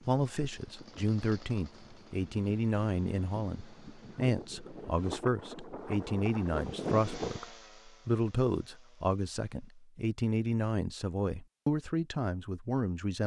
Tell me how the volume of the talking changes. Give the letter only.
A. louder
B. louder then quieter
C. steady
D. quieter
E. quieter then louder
C.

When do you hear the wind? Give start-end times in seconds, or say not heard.
0.0-7.5.